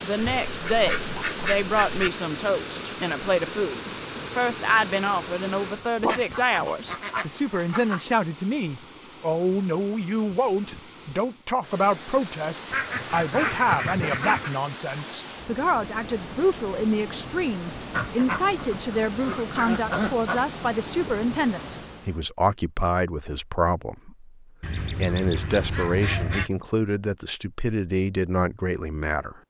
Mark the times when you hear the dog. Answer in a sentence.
You can hear the dog from 6.0 to 6.8 s.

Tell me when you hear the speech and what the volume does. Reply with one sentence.
The speech can be heard from 0.0 to 29.4 s, at a steady volume.